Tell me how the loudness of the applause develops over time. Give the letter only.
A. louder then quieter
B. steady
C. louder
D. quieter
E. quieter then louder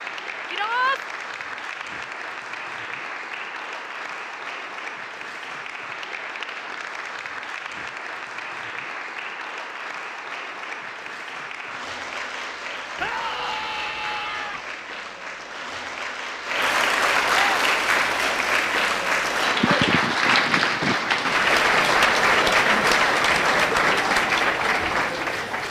C.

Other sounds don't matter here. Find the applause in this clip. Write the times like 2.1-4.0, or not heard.
0.0-25.6.